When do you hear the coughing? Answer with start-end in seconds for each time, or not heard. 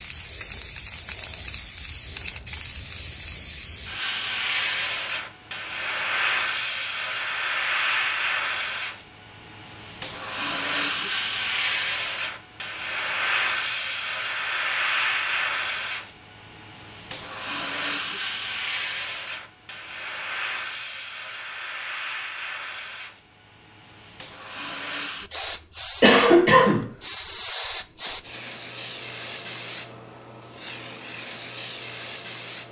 26.0-26.9.